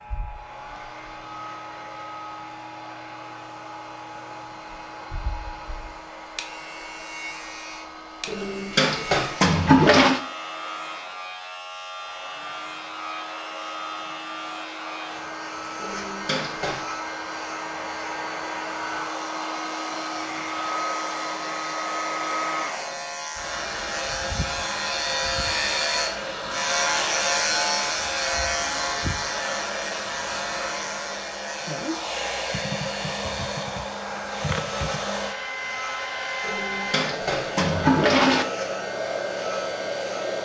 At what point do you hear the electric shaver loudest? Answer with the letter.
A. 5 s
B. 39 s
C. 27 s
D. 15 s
C.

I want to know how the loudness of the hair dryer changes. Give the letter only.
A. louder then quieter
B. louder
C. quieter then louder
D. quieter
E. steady
B.